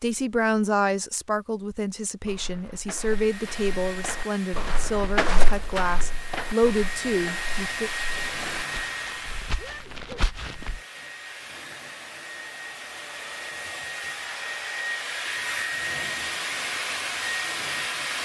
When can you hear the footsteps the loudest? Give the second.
5 s.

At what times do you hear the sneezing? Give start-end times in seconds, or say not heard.
9.6-10.2.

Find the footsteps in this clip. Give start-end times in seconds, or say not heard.
2.2-10.8.